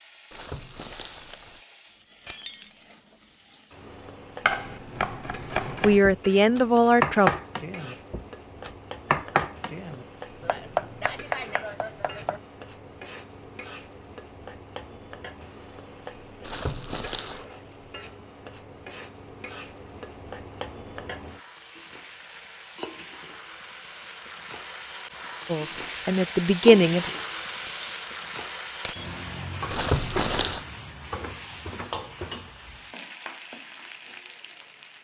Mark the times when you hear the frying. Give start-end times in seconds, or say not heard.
0.0-34.9.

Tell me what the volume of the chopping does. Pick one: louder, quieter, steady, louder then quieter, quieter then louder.
louder then quieter.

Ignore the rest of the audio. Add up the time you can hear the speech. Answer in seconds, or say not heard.
3 s.